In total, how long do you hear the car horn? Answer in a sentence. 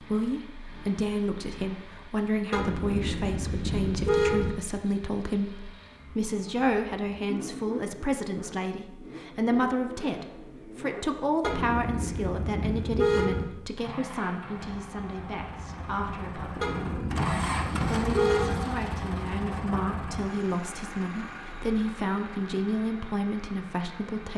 The car horn can be heard for 6 seconds in total.